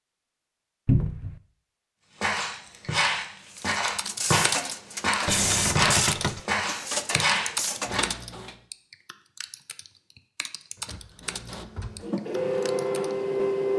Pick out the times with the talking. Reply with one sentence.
You can't hear the talking here.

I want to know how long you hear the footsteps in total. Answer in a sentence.
The footsteps can be heard for 6 seconds in total.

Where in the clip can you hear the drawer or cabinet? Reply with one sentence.
You can hear the drawer or cabinet from 0.8 to 1.4 s, from 5.2 to 6.4 s and from 10.8 to 12.1 s.